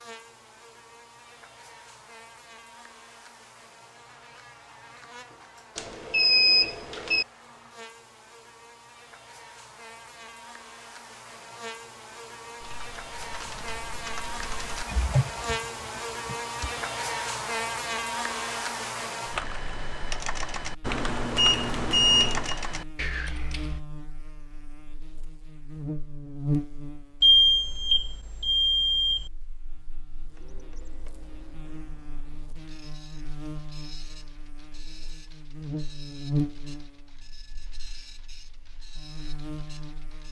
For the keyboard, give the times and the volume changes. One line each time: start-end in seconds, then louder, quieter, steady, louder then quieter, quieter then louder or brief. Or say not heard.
12.6-16.9 louder then quieter
19.3-23.8 steady.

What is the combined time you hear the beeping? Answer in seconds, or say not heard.
5 s.